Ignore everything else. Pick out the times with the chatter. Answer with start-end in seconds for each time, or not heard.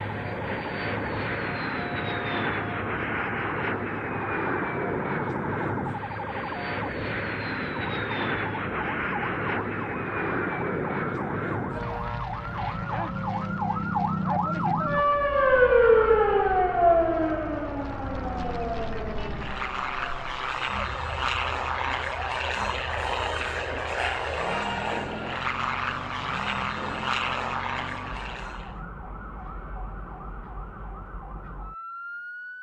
not heard.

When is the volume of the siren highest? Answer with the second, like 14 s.
16 s.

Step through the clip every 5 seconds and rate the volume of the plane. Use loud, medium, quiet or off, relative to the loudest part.
loud, loud, loud, medium, loud, loud, off.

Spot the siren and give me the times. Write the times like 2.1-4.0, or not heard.
0.0-32.5.